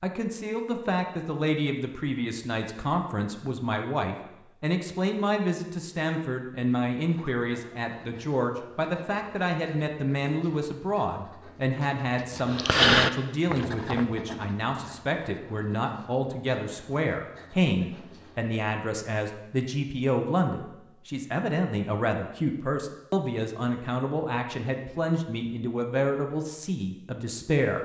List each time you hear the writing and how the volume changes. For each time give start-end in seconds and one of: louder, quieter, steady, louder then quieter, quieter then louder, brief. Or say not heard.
7.0-18.6 louder then quieter.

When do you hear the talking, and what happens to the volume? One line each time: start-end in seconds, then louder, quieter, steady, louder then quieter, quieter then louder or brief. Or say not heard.
0.0-27.7 steady.